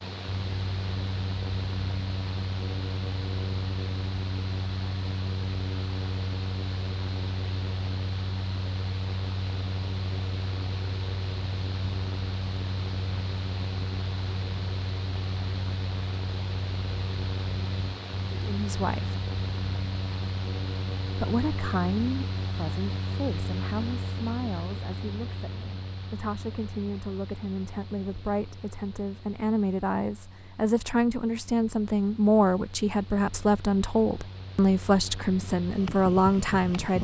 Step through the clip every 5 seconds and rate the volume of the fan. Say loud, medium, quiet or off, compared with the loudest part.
loud, loud, loud, loud, loud, medium, quiet, loud.